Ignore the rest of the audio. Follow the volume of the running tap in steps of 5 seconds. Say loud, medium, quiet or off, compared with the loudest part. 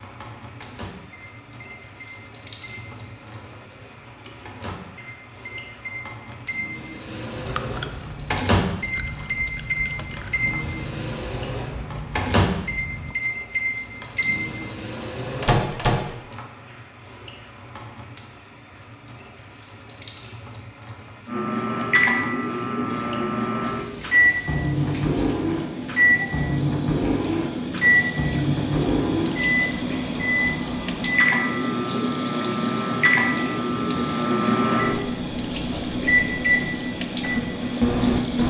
quiet, quiet, quiet, quiet, quiet, loud, loud, loud.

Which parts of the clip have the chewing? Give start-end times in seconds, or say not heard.
7.3-13.2.